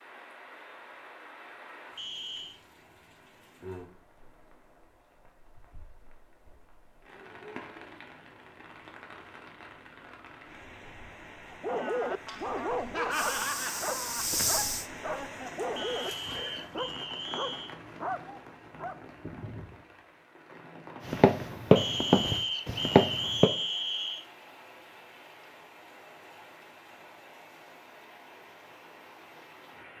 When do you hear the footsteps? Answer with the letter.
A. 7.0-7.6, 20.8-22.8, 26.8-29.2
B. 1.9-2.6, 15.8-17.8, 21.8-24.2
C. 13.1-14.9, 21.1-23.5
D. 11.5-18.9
C.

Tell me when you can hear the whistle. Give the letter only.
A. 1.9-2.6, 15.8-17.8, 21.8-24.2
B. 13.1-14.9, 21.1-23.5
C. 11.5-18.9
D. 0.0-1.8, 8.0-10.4
A.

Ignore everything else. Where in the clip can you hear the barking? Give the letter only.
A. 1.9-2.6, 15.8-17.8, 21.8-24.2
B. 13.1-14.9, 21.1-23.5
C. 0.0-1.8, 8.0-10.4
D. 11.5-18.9
D.